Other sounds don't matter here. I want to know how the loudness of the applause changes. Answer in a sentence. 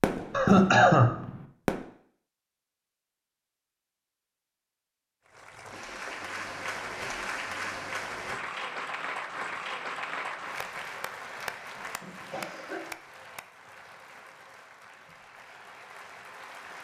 The loudness of the applause goes down.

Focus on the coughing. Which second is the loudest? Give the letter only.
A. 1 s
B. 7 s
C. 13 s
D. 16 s
A.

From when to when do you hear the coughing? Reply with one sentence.
You can hear the coughing from 0.3 to 1.1 s, from 5.7 to 6.2 s and from 11.8 to 12.8 s.